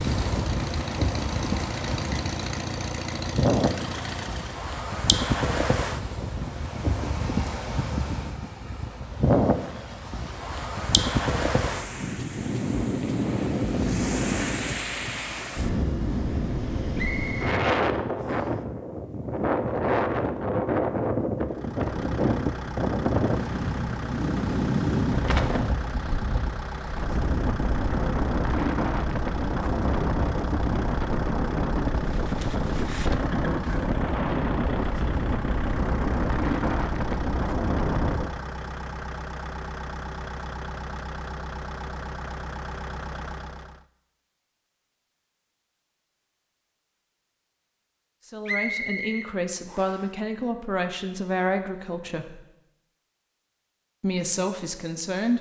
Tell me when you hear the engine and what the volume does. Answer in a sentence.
You can hear the engine from 0.0 to 4.7 s, at a steady volume; and from 21.4 to 43.9 s, at a steady volume.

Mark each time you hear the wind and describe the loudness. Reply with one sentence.
The wind can be heard from 0.0 to 38.3 s, at a steady volume.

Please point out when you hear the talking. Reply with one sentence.
You can hear the talking from 48.2 to 52.4 s and from 54.0 to 55.3 s.